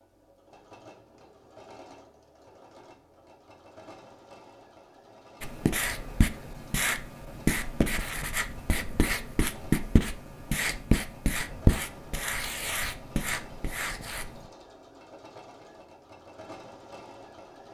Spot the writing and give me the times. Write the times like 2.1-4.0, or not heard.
5.4-14.4.